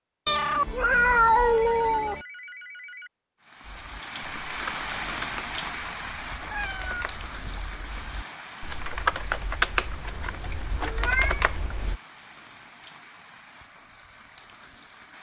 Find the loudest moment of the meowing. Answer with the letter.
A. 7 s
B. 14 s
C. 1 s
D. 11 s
C.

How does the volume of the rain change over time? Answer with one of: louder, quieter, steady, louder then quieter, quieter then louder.
quieter.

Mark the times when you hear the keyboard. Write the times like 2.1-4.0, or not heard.
3.6-11.9.